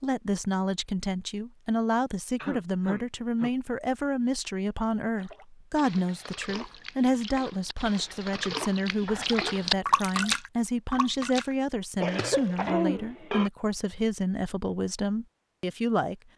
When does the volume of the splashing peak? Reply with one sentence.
The loudest moment of the splashing is at 10 seconds.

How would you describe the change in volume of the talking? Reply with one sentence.
The loudness of the talking stays about the same.